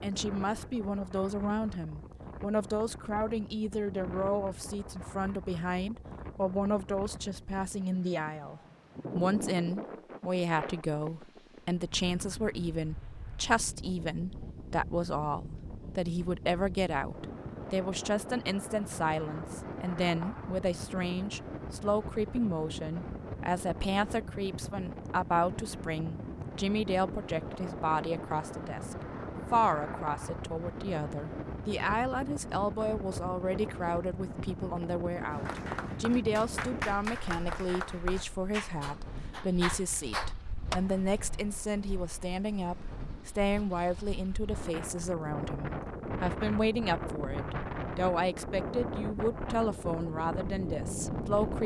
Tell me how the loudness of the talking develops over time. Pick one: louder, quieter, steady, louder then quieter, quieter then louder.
steady.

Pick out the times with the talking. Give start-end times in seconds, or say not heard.
0.0-51.6.